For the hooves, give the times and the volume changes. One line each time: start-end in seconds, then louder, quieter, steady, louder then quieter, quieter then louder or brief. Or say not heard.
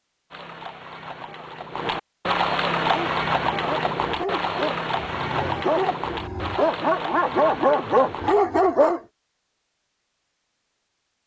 0.3-8.4 louder then quieter.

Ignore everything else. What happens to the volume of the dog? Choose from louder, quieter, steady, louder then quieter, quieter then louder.
louder.